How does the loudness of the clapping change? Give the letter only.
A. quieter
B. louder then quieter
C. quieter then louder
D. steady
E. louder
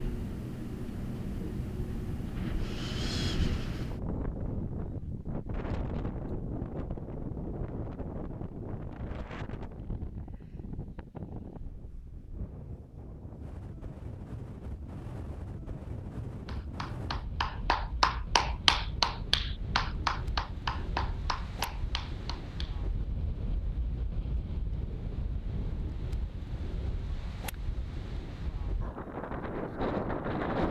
B.